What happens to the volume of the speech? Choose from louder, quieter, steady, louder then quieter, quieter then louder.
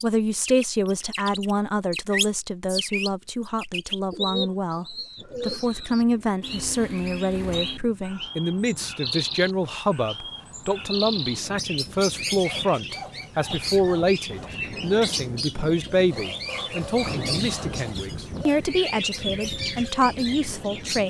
steady.